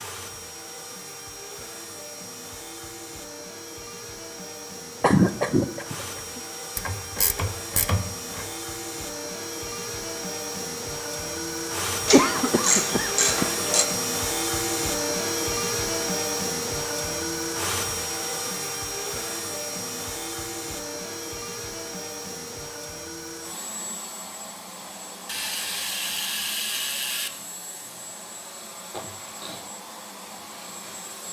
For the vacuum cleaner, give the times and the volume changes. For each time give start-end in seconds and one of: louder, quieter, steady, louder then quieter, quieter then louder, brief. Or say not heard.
0.0-31.2 louder then quieter.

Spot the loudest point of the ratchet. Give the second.
13 s.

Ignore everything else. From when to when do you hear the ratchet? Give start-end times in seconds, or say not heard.
6.8-8.4, 12.1-13.8, 25.2-27.3.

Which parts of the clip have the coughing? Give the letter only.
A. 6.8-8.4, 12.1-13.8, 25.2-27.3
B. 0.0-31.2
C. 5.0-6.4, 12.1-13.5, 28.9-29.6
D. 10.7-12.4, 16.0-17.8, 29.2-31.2
C.